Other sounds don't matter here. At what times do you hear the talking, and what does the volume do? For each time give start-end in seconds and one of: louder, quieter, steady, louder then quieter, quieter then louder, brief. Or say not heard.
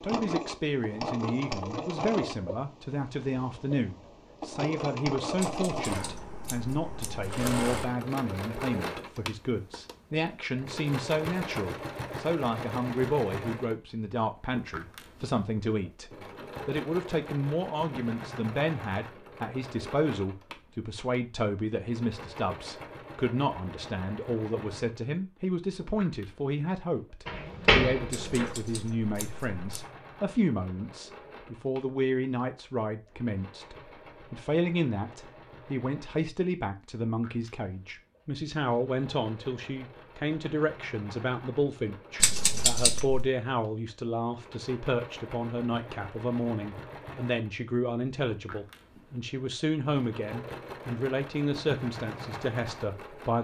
0.0-53.3 steady.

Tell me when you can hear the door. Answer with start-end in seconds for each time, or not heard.
27.2-28.6.